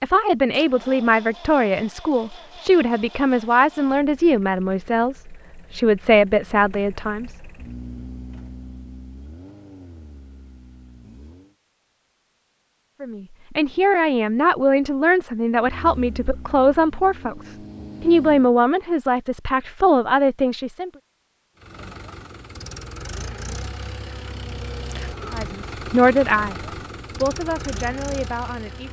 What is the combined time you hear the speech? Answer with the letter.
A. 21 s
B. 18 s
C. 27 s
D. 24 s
B.